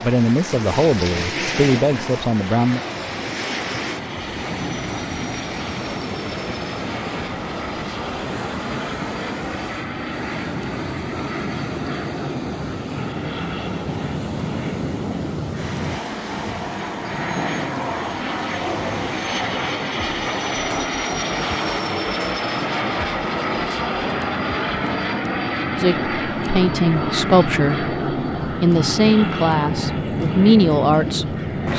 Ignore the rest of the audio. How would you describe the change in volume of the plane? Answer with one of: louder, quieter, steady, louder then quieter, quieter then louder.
louder.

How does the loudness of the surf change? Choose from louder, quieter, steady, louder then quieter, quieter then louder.
quieter.